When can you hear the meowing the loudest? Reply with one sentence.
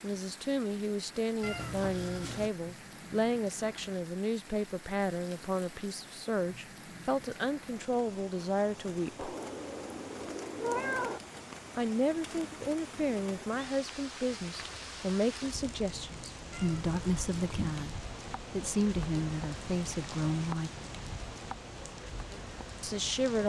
The volume of the meowing peaks at 11 seconds.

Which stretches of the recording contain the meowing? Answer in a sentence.
The meowing can be heard from 1.4 to 2.5 s, from 9.2 to 11.2 s and from 16.5 to 17.9 s.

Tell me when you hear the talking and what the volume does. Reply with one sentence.
The talking can be heard from 0.0 to 9.3 s, at a steady volume; from 11.8 to 20.7 s, at a steady volume; and briefly from 22.8 to 23.4 s.